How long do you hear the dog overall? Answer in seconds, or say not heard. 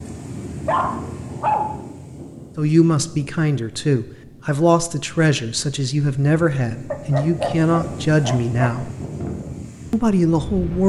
3 s.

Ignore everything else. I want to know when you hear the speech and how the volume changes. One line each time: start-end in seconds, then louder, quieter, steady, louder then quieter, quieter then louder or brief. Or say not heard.
2.5-8.9 steady
9.9-10.8 brief.